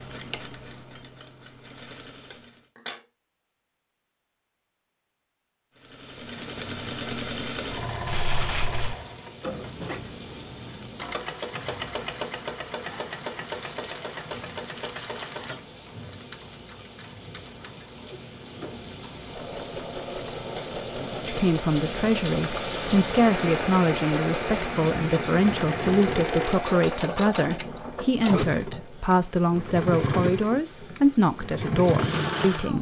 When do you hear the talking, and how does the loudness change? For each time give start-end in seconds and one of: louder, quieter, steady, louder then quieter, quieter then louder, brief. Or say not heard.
21.2-32.7 steady.